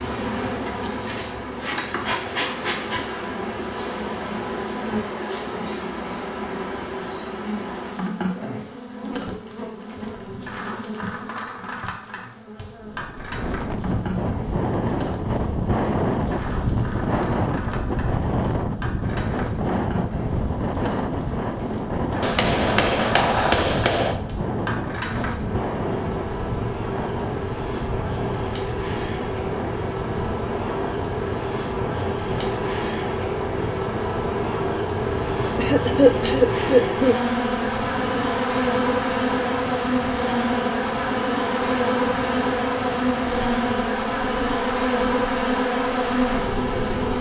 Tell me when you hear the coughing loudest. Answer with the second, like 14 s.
36 s.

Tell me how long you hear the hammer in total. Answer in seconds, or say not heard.
2 s.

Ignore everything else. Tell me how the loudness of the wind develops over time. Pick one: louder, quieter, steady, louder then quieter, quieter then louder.
quieter.